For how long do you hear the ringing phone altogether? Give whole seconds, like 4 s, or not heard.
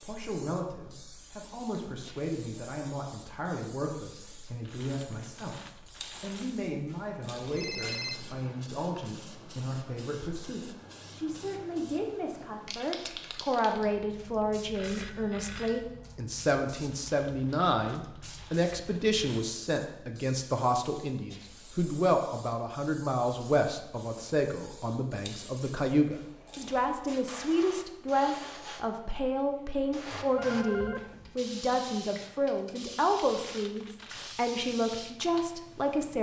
3 s.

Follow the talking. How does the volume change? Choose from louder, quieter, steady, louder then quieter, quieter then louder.
louder.